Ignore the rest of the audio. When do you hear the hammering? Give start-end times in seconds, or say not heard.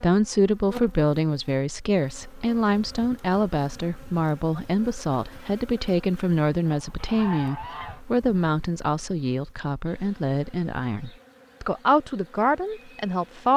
not heard.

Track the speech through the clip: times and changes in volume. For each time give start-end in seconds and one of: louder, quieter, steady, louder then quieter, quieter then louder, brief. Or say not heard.
0.0-13.5 steady.